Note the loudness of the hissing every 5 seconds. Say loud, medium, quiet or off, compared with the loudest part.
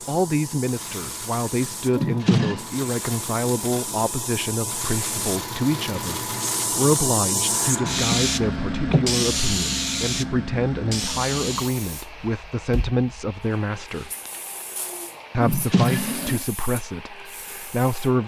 medium, loud, medium, quiet.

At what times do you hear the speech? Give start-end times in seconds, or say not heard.
0.1-14.1, 15.3-18.2.